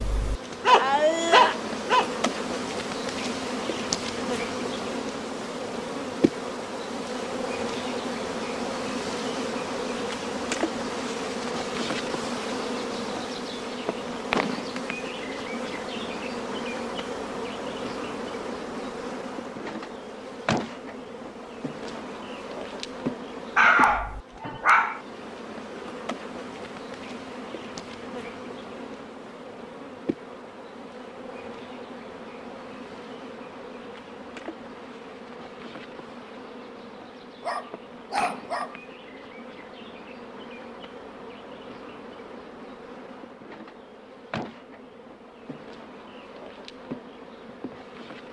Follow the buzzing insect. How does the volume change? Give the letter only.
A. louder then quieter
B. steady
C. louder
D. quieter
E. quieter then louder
D.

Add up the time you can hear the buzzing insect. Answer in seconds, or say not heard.
48 s.